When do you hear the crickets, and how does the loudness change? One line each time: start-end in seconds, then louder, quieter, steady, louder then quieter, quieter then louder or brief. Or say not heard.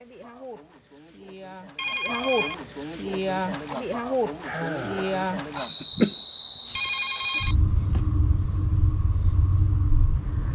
0.0-10.5 louder then quieter.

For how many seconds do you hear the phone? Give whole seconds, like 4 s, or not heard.
2 s.